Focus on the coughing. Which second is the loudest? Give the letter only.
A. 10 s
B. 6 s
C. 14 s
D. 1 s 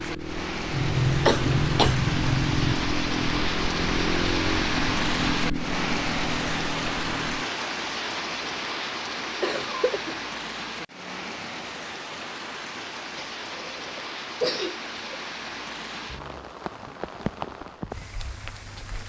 D.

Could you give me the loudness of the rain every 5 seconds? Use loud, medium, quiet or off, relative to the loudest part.
loud, loud, medium, medium.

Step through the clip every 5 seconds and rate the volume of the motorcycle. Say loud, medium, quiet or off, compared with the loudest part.
loud, loud, off, off.